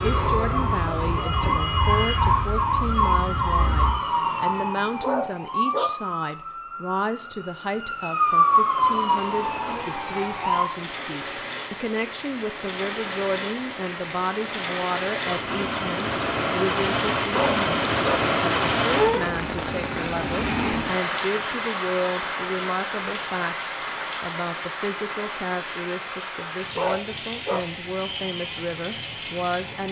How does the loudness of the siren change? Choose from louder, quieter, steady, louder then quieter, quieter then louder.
quieter then louder.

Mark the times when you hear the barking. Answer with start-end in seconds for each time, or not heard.
5.0-6.0, 17.3-18.2, 26.8-27.6.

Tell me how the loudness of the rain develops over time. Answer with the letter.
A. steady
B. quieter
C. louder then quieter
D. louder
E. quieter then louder
C.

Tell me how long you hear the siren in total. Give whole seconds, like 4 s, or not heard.
11 s.